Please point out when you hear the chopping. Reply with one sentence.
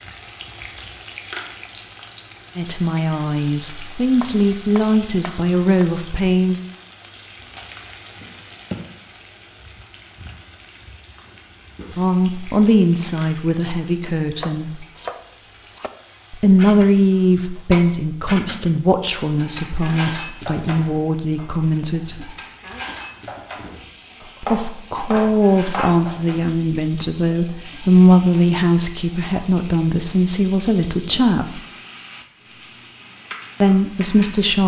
You can hear the chopping from 4.2 to 5.8 s, from 14.2 to 15.9 s and from 24.4 to 26.1 s.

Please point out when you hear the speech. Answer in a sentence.
You can hear the speech from 2.5 to 6.6 s, from 11.9 to 14.8 s, from 16.3 to 22.3 s, from 24.4 to 31.6 s and from 33.6 to 34.6 s.